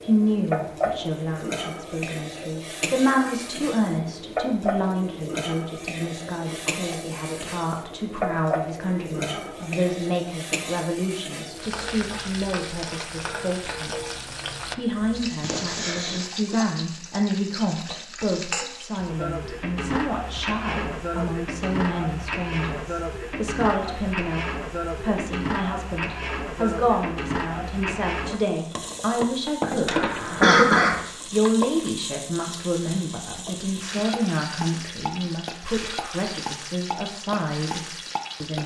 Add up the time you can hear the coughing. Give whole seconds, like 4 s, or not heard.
2 s.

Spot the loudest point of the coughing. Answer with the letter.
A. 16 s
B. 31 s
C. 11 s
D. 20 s
B.